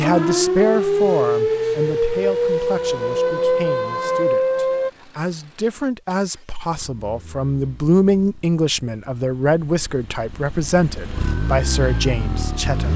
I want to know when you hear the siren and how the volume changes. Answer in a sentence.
The siren can be heard from 0.0 to 4.9 s, at a steady volume; and briefly from 11.1 to 12.8 s.